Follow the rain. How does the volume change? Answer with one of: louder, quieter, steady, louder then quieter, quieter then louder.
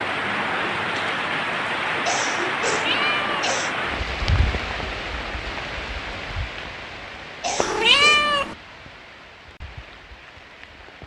quieter.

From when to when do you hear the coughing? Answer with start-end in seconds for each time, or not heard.
2.0-3.8, 7.4-8.3.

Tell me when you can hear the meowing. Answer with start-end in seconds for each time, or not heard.
2.7-3.5, 7.5-8.6.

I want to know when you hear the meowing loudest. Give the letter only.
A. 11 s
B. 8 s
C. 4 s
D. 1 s
B.